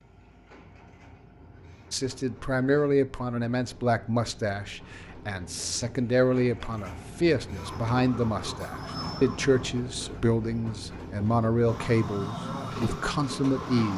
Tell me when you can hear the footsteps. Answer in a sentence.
You can't hear the footsteps here.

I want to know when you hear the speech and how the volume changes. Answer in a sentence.
The speech can be heard from 1.9 to 13.9 s, at a steady volume.